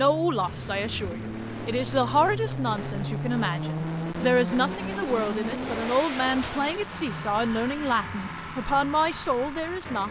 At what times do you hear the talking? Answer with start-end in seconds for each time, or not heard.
0.0-10.0.